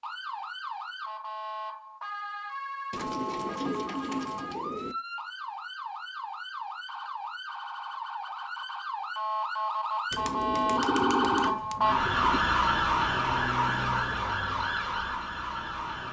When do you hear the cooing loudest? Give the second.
11 s.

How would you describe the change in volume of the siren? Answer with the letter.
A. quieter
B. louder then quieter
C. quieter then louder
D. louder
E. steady
D.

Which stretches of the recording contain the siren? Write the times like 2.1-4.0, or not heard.
0.0-16.0.